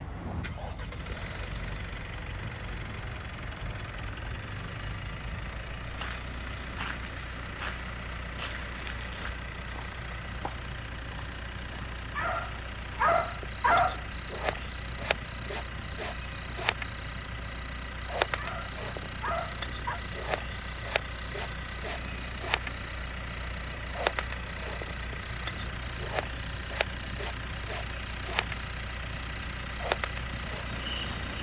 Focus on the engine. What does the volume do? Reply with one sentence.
The loudness of the engine stays about the same.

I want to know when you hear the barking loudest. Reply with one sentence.
The volume of the barking peaks at 14 seconds.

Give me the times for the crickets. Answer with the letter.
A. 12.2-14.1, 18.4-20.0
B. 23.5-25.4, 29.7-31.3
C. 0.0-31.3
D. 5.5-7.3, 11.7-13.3
C.